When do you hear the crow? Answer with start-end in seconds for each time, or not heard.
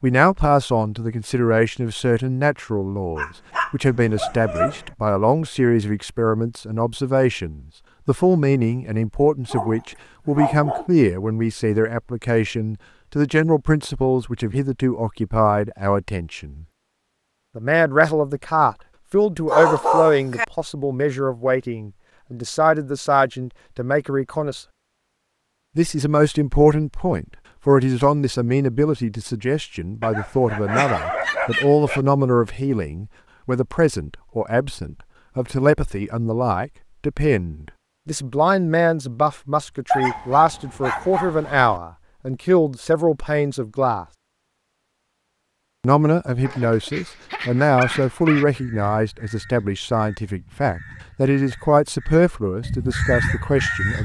48.5-54.0.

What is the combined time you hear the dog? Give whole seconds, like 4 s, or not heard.
10 s.